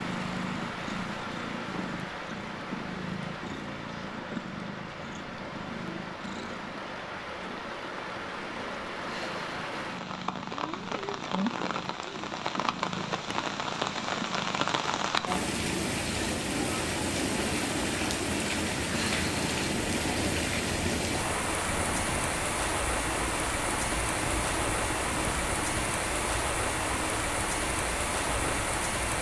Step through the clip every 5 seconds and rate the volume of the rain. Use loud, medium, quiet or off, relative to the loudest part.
medium, medium, loud, loud, loud, loud.